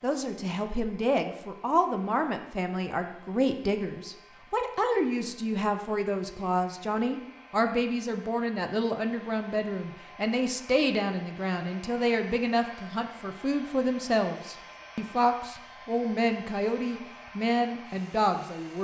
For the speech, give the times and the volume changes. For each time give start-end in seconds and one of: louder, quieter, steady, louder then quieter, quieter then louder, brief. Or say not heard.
0.0-18.8 steady.